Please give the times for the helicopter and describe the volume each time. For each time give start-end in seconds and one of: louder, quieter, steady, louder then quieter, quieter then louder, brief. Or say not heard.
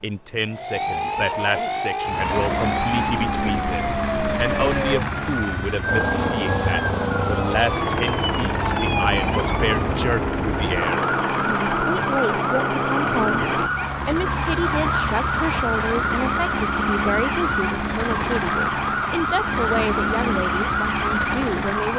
2.0-21.9 steady.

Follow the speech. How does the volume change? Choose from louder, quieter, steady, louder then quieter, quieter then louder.
steady.